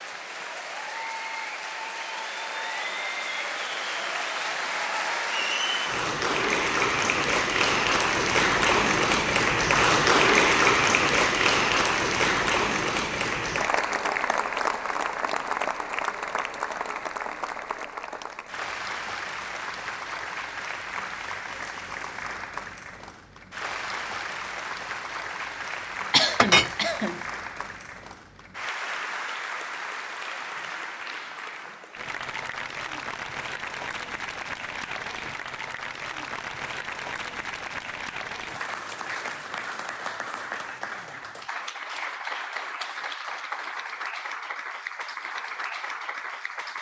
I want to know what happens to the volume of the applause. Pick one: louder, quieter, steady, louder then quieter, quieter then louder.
quieter.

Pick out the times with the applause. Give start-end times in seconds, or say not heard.
0.0-46.7.